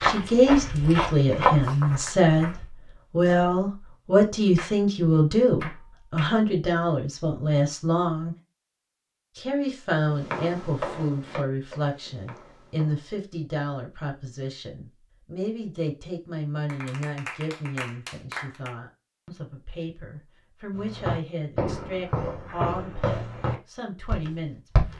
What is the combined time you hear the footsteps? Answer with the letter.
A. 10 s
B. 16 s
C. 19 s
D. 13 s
A.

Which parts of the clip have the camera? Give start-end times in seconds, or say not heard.
not heard.